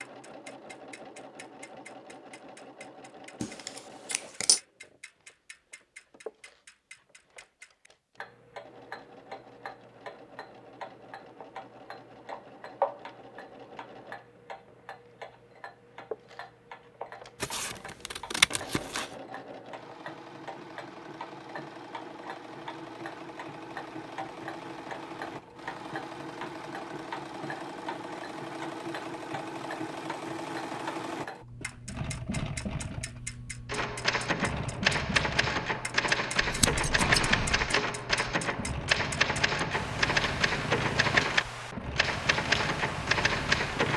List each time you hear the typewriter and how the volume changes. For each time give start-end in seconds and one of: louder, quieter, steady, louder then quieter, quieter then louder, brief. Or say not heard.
33.6-43.9 steady.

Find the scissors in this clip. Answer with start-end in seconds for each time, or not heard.
3.4-4.6, 17.4-19.1, 36.4-37.7.